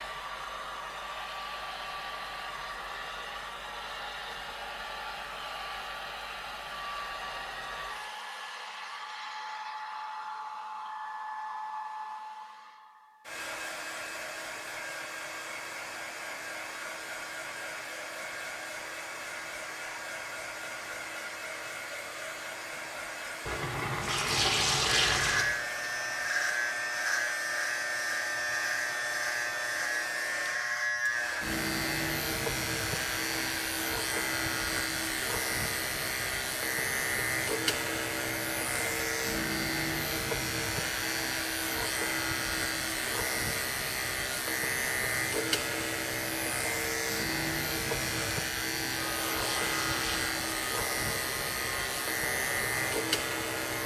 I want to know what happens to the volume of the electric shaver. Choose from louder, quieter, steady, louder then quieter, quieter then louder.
steady.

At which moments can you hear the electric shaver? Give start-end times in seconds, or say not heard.
25.1-53.8.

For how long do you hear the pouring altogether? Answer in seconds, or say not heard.
4 s.